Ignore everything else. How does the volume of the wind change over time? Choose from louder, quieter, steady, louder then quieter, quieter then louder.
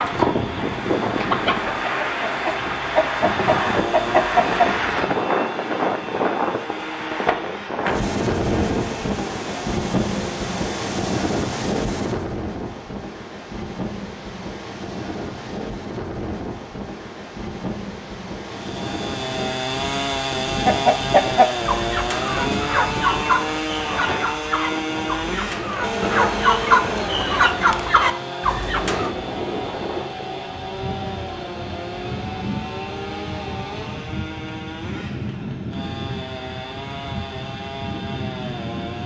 quieter.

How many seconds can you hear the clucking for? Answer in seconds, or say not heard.
13 s.